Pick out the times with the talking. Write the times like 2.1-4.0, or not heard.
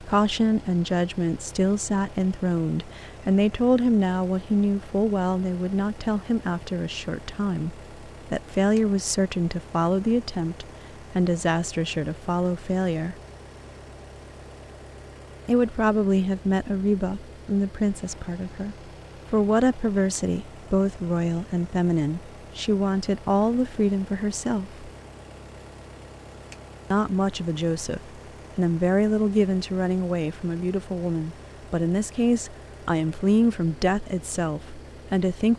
0.0-13.2, 15.4-24.9, 26.9-35.5.